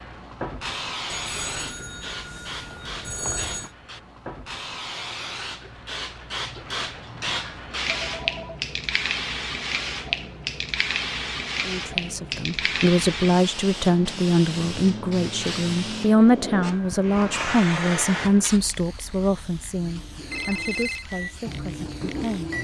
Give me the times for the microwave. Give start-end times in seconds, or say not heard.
19.8-22.5.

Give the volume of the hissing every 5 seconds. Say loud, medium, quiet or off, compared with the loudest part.
medium, loud, loud, loud, quiet.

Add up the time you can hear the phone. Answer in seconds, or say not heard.
4 s.